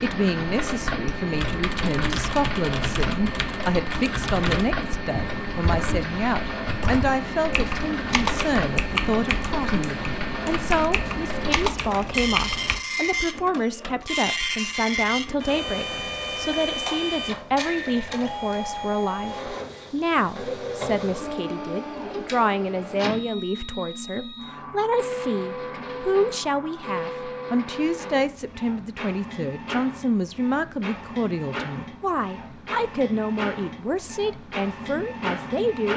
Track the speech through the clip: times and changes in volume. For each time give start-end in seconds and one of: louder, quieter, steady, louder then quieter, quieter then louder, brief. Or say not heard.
0.0-35.9 steady.